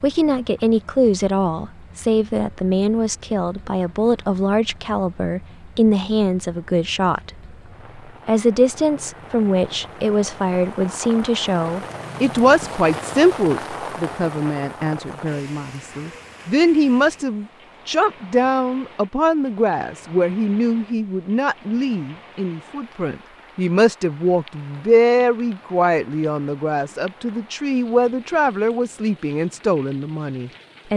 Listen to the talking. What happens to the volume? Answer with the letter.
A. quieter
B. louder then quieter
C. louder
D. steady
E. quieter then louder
D.